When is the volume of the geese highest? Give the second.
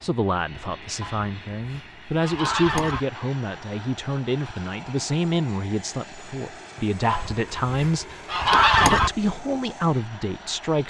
9 s.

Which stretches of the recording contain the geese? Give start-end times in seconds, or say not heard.
1.0-3.0, 7.0-9.1.